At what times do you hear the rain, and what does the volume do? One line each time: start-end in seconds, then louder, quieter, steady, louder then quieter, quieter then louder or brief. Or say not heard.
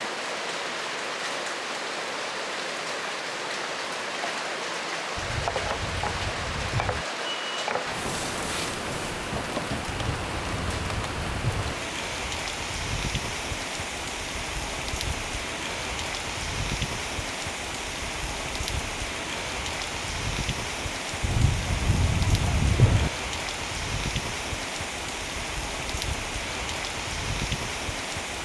0.0-28.4 steady.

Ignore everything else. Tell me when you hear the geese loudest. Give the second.
23 s.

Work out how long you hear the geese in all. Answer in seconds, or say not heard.
6 s.